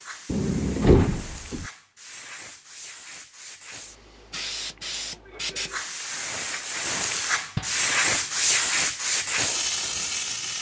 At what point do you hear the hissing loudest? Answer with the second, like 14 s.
8 s.